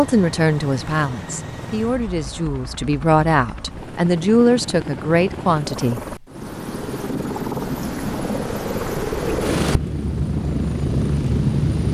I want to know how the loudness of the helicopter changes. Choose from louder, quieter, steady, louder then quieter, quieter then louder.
louder.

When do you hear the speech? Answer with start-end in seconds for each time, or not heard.
0.0-6.0.